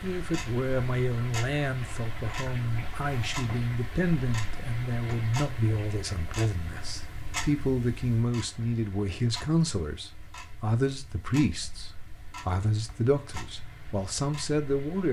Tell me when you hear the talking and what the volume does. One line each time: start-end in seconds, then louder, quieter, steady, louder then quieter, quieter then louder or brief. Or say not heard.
0.0-15.0 steady.